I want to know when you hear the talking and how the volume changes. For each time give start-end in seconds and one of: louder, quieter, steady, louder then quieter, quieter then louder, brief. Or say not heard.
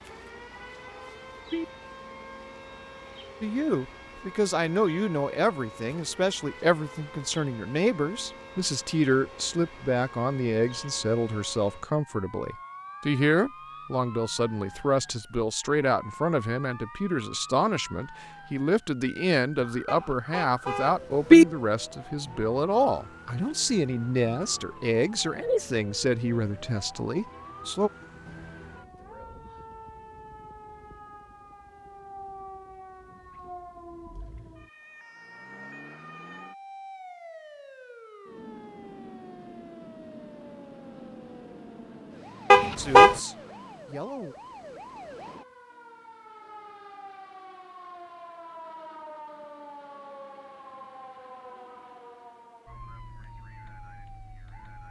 3.4-27.9 steady
42.8-44.4 brief.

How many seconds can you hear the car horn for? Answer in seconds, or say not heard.
4 s.